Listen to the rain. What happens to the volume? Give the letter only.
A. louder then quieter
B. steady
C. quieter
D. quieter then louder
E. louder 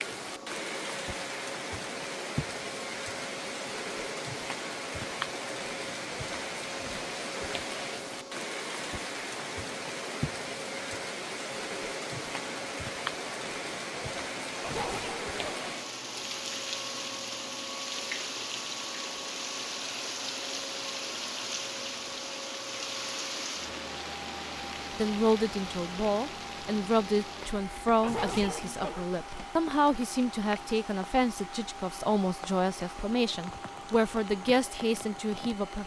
C.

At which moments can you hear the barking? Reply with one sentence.
You can hear the barking from 14.6 to 15.7 s and from 28.0 to 29.1 s.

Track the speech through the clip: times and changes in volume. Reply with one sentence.
You can hear the speech from 24.9 to 35.8 s, at a steady volume.